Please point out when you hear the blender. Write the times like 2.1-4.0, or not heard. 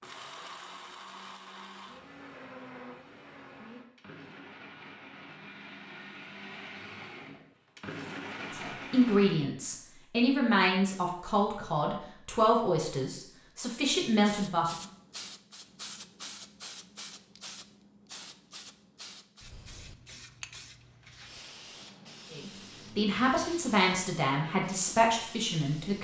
0.0-9.4.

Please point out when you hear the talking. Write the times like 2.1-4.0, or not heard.
8.5-14.8, 22.3-25.9.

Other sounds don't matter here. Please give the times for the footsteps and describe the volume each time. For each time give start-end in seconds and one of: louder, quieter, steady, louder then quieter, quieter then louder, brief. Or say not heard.
not heard.